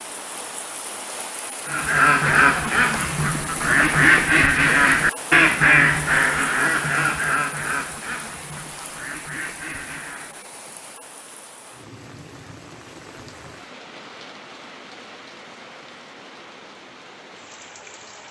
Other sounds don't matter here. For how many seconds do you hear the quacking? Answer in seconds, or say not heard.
9 s.